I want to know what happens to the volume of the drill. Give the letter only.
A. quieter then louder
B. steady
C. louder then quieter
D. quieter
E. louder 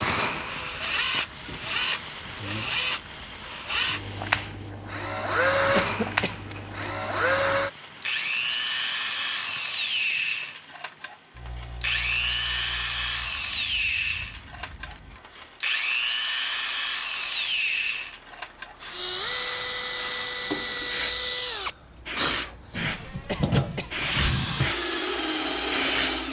B.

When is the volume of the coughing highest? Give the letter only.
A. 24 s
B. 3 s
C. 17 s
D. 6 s
D.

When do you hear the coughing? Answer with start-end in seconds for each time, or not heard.
5.8-6.4, 23.2-23.9.